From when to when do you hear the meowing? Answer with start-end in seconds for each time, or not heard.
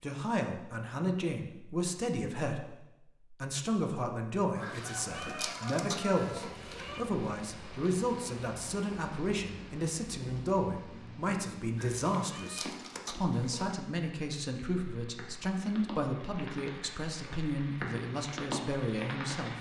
4.6-7.0, 11.8-13.7.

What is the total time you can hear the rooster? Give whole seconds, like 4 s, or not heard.
2 s.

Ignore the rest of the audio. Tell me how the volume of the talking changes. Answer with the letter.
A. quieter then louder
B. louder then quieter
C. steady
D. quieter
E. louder
C.